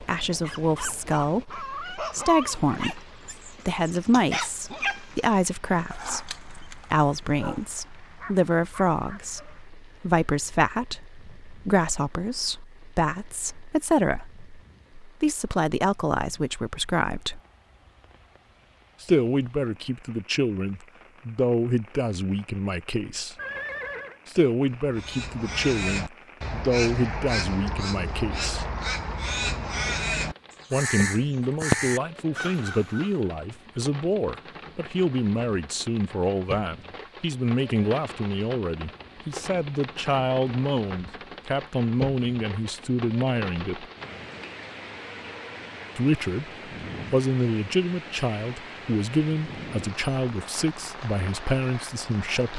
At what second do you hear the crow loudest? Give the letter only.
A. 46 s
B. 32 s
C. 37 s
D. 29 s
B.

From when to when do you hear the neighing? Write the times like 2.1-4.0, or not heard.
23.4-24.2.